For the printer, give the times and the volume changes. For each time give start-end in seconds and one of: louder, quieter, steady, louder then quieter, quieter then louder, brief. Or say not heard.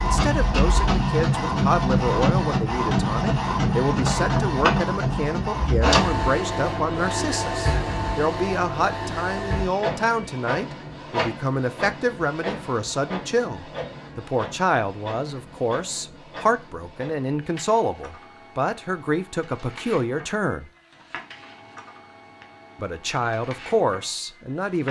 0.0-24.8 quieter.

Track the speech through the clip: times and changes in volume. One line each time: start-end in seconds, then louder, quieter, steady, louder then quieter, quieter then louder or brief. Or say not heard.
0.0-20.7 steady
22.8-24.8 brief.